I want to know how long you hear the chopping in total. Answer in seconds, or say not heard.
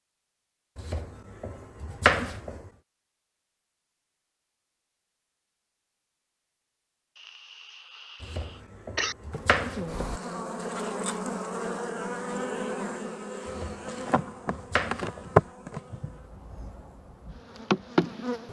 6 s.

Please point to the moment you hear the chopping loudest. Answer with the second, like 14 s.
2 s.